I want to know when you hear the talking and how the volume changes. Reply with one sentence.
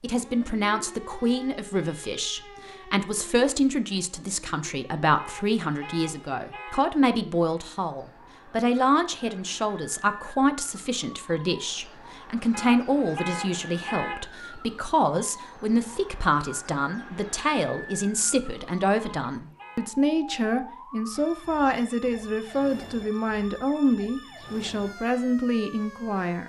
You can hear the talking from 0.0 to 26.4 s, at a steady volume.